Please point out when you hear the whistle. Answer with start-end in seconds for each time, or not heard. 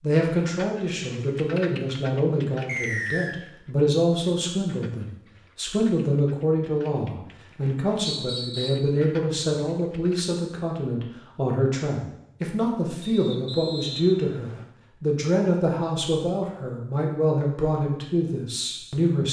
2.6-3.4, 8.1-8.8, 13.0-14.7.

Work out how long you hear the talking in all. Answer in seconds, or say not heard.
19 s.